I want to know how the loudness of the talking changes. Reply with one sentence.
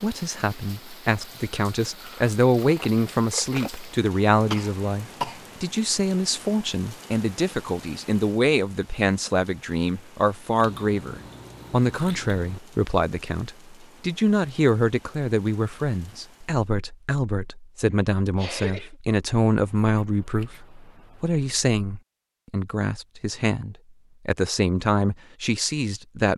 The loudness of the talking stays about the same.